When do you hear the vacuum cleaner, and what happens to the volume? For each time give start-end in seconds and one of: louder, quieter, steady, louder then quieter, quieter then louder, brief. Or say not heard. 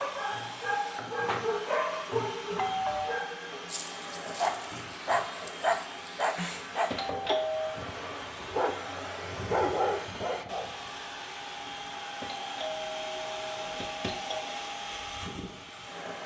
0.0-16.2 steady.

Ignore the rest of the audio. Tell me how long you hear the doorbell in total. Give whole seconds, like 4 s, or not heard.
4 s.